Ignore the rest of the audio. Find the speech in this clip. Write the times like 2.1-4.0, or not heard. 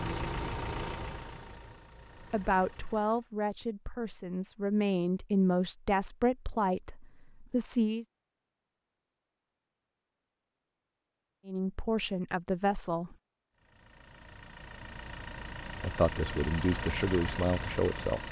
2.3-8.1, 11.4-13.2, 15.8-18.2.